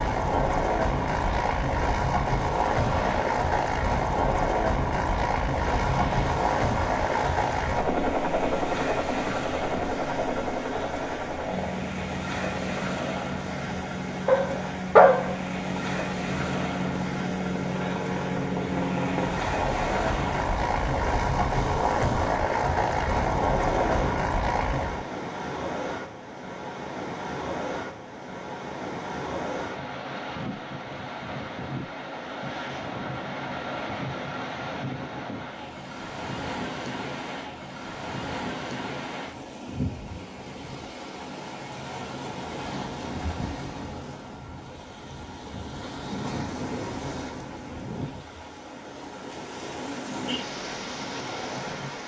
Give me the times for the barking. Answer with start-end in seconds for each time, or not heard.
14.2-15.3.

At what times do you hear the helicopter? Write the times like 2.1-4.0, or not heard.
0.0-25.1.